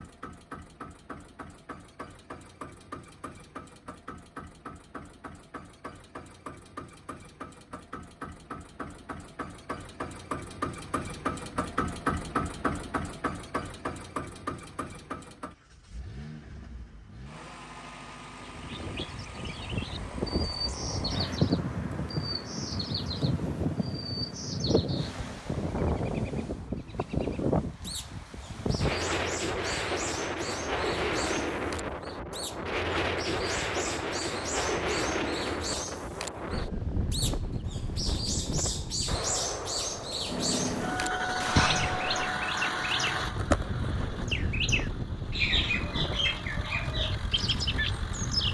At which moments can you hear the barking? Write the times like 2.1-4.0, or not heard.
not heard.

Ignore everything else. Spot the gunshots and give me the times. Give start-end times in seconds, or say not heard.
39.0-42.4.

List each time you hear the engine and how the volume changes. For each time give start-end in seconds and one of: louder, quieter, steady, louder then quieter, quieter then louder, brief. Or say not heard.
0.0-25.4 louder then quieter
40.2-48.4 quieter.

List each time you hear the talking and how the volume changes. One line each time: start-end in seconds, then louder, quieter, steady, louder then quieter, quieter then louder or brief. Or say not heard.
not heard.